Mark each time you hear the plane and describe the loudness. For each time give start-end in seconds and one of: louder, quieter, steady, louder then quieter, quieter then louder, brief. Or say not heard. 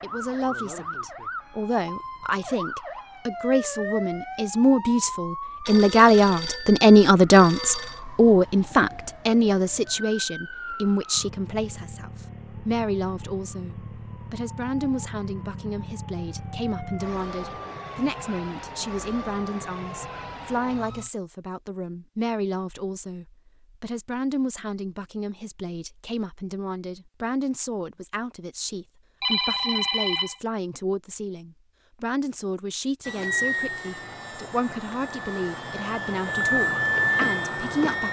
33.0-38.0 quieter then louder.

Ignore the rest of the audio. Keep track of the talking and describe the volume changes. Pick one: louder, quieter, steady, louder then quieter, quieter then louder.
quieter.